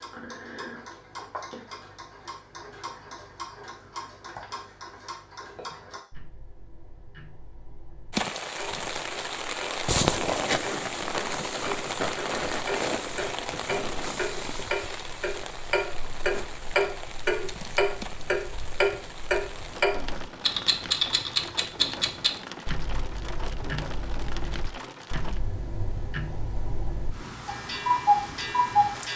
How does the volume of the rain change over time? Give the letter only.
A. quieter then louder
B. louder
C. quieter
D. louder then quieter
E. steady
C.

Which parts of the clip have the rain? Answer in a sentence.
The rain can be heard from 8.1 to 29.1 s.